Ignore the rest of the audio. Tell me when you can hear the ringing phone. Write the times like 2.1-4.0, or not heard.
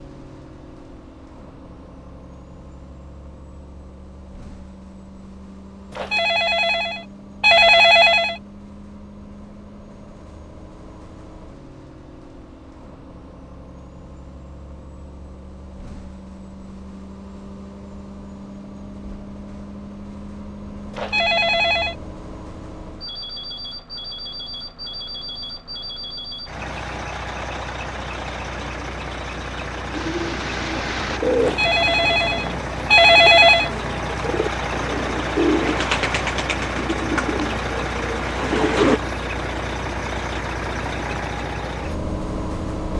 6.0-8.4, 20.9-21.9, 31.4-33.7.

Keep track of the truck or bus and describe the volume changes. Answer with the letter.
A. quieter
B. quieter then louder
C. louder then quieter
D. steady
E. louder
E.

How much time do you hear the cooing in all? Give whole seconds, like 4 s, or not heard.
9 s.